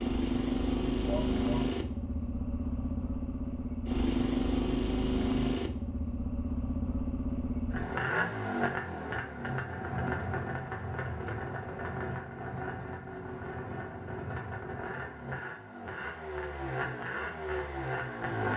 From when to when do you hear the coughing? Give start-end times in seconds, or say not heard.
1.1-1.6.